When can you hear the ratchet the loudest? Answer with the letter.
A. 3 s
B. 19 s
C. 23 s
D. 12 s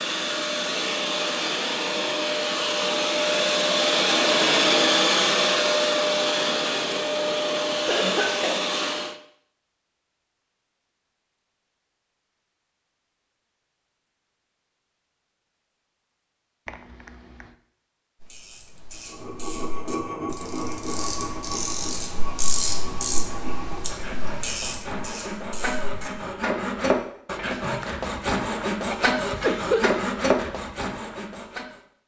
C.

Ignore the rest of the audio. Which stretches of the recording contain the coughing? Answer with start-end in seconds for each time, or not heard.
7.8-8.7, 16.6-17.5, 28.9-30.0.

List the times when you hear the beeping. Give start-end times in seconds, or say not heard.
not heard.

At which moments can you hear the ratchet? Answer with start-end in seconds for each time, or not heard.
18.2-26.1.